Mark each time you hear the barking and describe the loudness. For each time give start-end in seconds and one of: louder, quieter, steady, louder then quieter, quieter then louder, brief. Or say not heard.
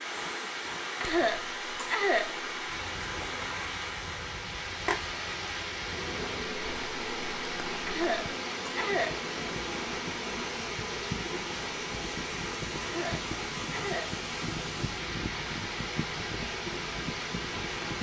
not heard.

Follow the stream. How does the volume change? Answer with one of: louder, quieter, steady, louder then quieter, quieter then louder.
steady.